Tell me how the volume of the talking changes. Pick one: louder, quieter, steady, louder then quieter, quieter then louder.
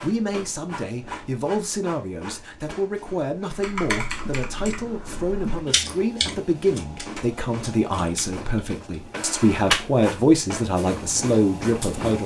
louder.